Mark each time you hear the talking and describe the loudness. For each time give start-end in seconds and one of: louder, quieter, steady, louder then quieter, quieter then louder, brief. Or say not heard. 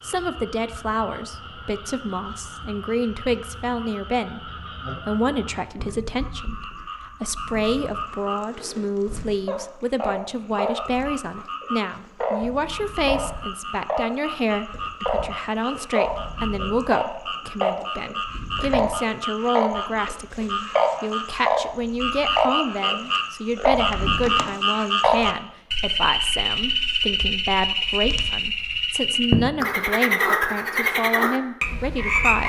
0.0-32.4 steady.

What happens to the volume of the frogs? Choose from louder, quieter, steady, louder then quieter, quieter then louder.
louder.